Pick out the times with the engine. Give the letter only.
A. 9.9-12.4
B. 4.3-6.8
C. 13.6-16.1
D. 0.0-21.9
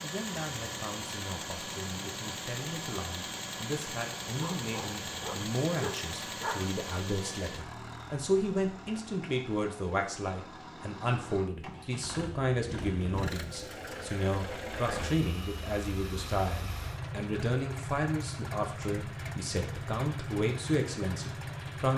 D.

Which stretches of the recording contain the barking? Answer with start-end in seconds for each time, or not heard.
4.3-6.8.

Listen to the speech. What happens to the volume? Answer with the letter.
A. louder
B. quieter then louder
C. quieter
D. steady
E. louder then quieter
A.